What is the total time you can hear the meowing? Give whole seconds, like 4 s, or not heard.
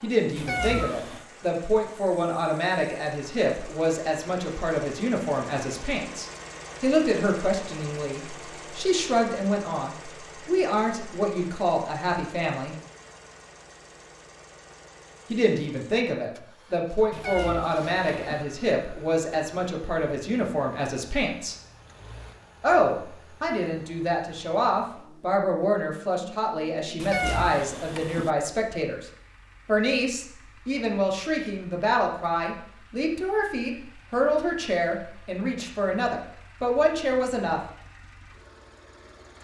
4 s.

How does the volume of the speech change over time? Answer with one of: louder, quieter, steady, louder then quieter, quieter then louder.
steady.